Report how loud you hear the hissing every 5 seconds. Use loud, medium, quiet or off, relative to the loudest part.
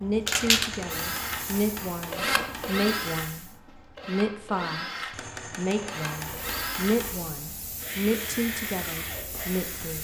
loud, medium.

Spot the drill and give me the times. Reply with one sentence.
You can hear the drill from 0.0 to 9.9 s.